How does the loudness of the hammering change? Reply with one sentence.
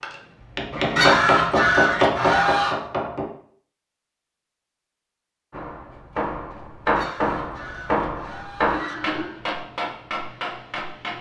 The volume of the hammering goes down.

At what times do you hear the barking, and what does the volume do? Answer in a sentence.
You can't hear the barking here.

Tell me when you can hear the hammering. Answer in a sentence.
You can hear the hammering from 0.0 to 3.3 s and from 5.5 to 11.1 s.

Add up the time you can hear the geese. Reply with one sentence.
The geese can be heard for 4 seconds in total.